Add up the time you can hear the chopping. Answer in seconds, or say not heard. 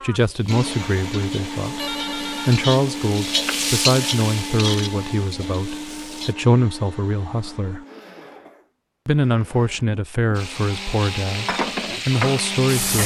not heard.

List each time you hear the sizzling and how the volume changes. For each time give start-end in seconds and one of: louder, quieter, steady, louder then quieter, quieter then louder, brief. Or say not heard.
0.0-6.3 louder then quieter
10.3-13.0 brief.